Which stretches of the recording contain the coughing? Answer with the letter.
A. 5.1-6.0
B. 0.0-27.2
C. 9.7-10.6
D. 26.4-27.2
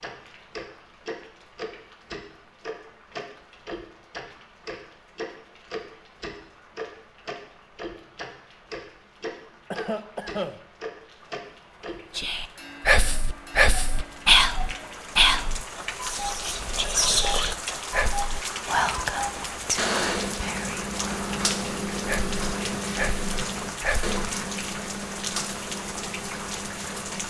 C.